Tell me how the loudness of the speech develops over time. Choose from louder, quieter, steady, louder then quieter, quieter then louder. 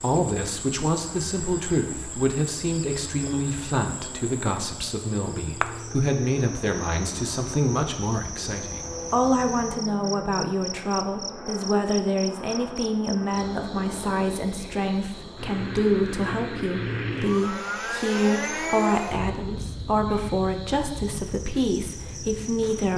steady.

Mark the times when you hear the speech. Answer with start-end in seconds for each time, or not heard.
0.0-22.9.